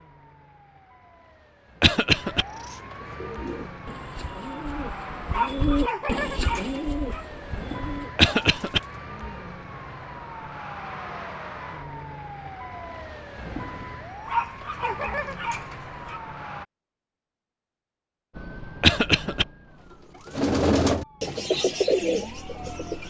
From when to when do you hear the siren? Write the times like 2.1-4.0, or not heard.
0.0-16.6, 18.3-23.0.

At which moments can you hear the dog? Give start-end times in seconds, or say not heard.
5.3-7.2, 14.2-16.2.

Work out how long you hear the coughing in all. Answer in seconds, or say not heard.
2 s.